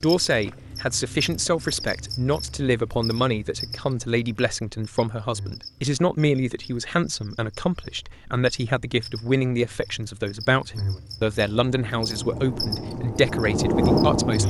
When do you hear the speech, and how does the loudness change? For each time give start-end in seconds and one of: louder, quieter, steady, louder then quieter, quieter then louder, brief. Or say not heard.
0.0-14.4 steady.